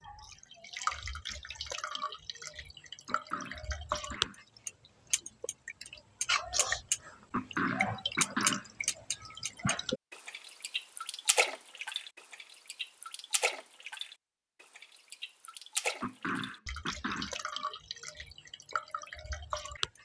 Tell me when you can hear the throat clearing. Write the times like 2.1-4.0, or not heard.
3.0-4.8, 7.3-8.7, 16.0-17.4.